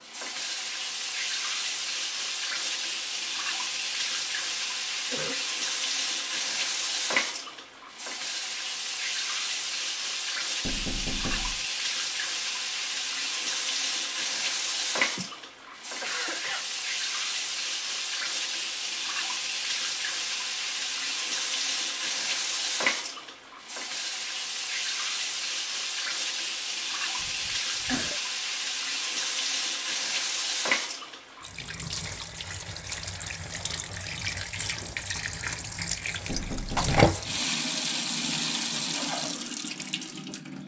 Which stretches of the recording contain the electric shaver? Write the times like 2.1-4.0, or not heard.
not heard.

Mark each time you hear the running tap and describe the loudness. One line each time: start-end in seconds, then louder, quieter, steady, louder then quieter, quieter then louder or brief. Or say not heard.
0.0-40.6 steady.